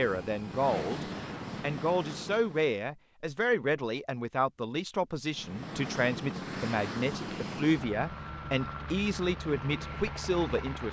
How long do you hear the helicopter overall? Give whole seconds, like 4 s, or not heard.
8 s.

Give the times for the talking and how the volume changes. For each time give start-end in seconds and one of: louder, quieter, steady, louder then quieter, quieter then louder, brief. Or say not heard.
0.0-10.8 steady.